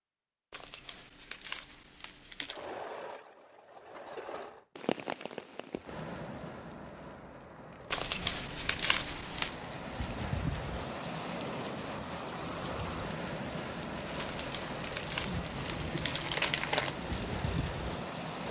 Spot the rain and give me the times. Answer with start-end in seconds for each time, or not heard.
4.8-18.4.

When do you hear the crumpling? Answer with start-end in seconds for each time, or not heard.
0.5-2.6, 7.9-9.6, 14.2-16.9.